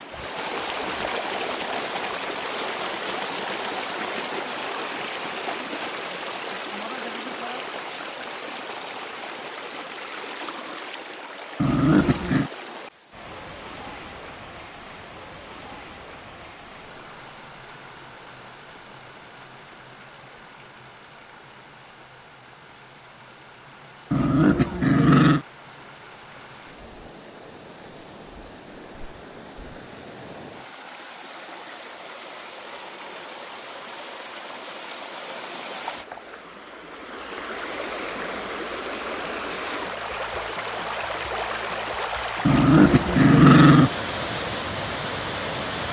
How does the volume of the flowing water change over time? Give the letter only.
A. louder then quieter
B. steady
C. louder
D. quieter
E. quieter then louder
E.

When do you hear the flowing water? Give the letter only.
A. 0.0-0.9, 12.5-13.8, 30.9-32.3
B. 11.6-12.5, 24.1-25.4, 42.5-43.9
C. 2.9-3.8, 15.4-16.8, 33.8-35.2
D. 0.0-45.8
D.